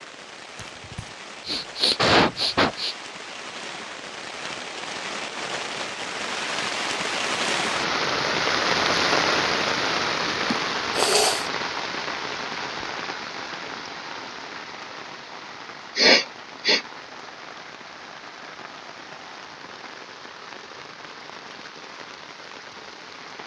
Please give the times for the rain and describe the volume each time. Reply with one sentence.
You can hear the rain from 0.0 to 23.4 s, getting louder then quieter.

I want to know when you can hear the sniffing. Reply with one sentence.
You can hear the sniffing from 0.6 to 3.0 s, from 10.5 to 11.5 s and from 15.9 to 16.8 s.